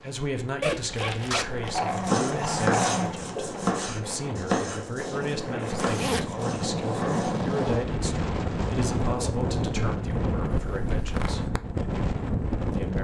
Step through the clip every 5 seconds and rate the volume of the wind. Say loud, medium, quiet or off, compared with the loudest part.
medium, loud, loud.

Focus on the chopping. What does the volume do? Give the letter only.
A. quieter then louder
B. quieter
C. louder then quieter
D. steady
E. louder
B.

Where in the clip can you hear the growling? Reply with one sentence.
You can hear the growling from 1.3 to 3.2 s and from 6.9 to 7.4 s.